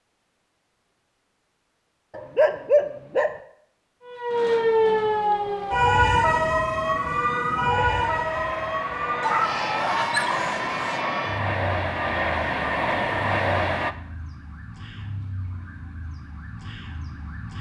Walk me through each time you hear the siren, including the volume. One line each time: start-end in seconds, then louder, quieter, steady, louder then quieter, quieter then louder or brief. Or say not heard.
4.0-17.5 quieter.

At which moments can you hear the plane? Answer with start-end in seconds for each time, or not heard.
6.0-13.9.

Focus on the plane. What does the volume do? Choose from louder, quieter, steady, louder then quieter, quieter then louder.
louder.